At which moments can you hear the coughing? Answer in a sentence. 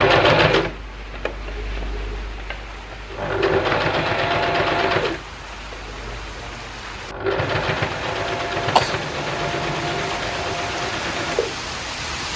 You can hear the coughing from 8.6 to 10.2 s.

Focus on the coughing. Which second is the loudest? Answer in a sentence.
The loudest moment of the coughing is at 9 seconds.